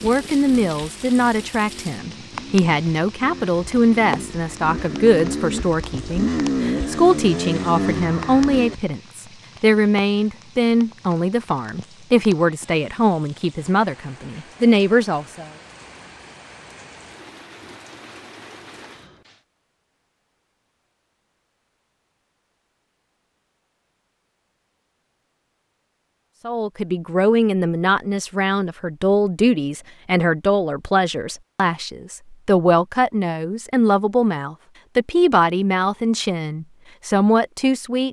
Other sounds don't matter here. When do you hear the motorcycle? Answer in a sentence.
The motorcycle can be heard from 0.0 to 8.8 s.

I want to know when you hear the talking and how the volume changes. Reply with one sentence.
You can hear the talking from 0.0 to 15.5 s, at a steady volume; and from 26.4 to 38.0 s, at a steady volume.